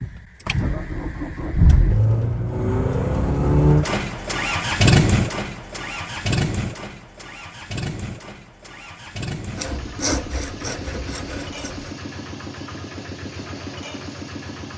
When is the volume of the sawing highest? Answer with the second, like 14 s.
10 s.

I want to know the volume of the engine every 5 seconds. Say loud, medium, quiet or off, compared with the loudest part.
loud, medium, quiet.